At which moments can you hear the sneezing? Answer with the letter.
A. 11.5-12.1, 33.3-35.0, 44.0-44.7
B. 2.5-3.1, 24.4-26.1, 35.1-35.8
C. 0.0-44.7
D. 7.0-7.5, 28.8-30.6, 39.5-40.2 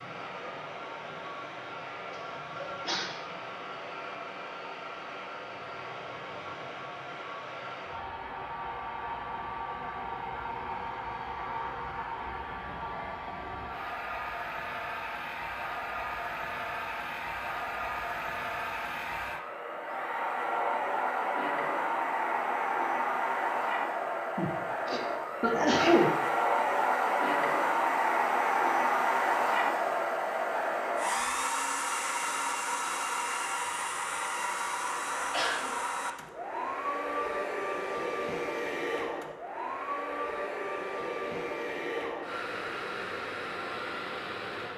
B.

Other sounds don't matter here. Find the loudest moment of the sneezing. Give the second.
26 s.